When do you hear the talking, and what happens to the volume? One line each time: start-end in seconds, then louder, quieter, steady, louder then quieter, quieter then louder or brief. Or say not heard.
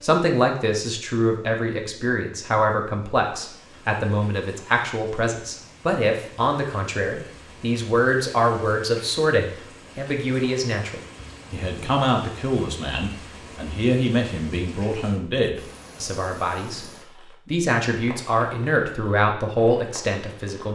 0.0-20.7 steady.